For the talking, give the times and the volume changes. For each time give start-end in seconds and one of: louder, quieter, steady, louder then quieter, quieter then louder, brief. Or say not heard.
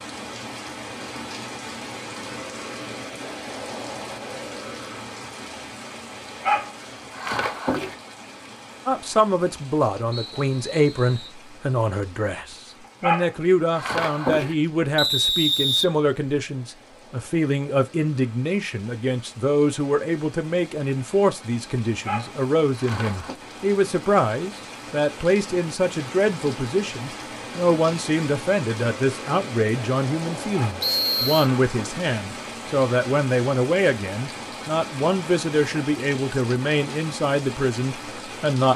8.8-38.7 steady.